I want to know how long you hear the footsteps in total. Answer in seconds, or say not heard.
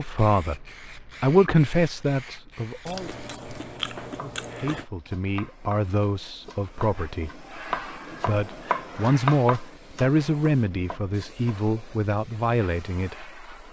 not heard.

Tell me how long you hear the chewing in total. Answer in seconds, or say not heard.
2 s.